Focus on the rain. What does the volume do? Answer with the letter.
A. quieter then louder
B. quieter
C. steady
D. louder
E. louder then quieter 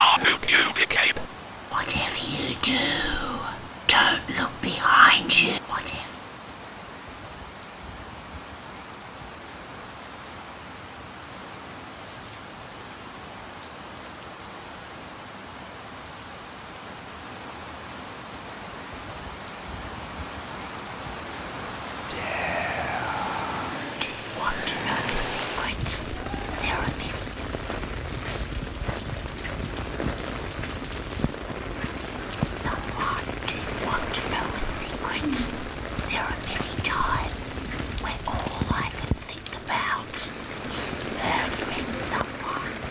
D.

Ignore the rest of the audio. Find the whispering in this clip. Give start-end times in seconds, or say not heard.
0.0-6.1, 22.1-27.2, 32.5-42.7.